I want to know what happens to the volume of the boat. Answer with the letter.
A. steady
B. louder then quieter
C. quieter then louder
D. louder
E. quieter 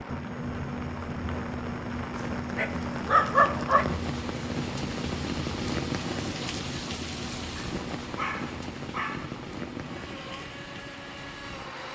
E.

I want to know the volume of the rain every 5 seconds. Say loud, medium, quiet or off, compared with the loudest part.
loud, loud, medium.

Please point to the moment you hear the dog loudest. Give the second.
3 s.